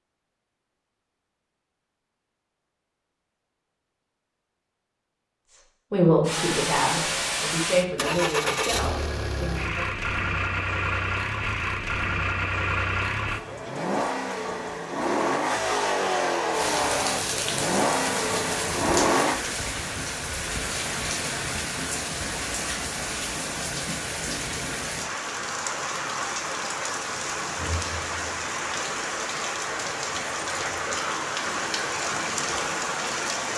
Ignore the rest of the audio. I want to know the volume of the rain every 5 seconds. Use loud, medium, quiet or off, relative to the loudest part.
off, off, off, loud, loud, loud, loud.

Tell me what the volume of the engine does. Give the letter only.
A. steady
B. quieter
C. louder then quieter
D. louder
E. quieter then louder
A.